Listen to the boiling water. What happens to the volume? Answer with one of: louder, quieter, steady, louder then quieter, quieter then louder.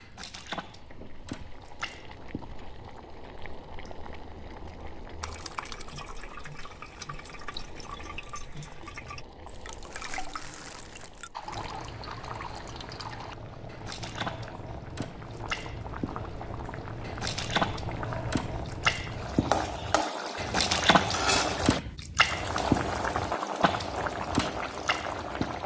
louder.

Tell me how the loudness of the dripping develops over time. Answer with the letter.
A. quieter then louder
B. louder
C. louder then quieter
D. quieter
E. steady
B.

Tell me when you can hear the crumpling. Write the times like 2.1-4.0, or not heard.
9.8-11.6.